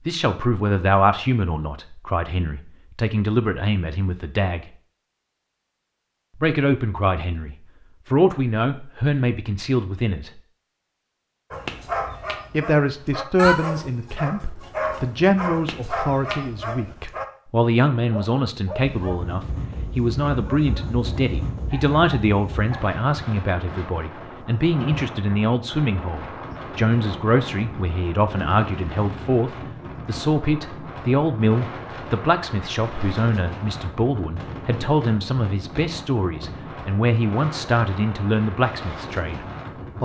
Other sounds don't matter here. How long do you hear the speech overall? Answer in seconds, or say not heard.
36 s.